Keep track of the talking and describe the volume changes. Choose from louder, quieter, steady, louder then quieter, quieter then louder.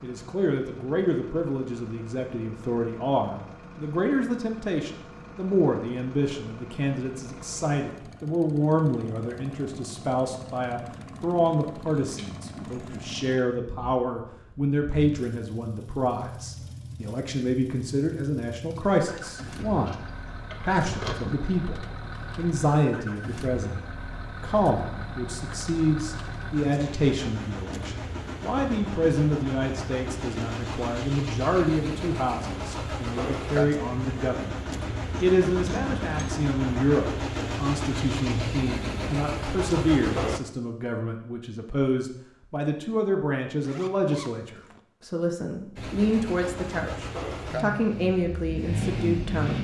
steady.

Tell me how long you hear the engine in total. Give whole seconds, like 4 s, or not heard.
44 s.